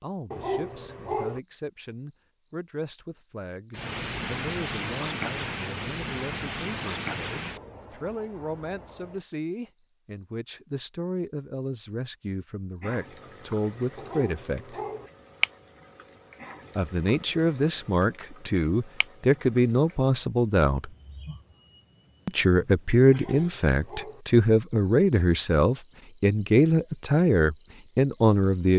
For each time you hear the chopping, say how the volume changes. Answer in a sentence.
You can't hear the chopping here.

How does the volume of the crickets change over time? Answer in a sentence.
The volume of the crickets goes down, then up.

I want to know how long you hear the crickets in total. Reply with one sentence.
You can hear the crickets for 29 seconds altogether.